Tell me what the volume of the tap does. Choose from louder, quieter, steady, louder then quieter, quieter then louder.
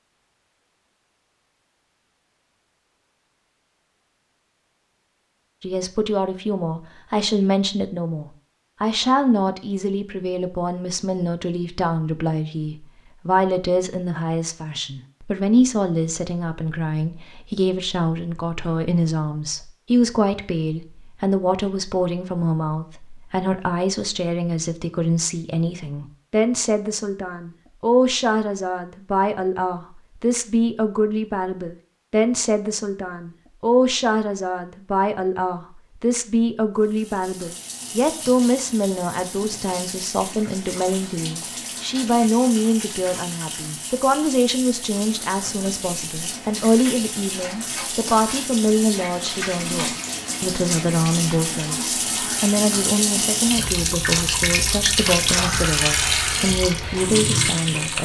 louder.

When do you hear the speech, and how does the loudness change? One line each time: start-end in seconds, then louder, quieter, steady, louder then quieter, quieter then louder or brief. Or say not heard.
5.6-57.9 steady.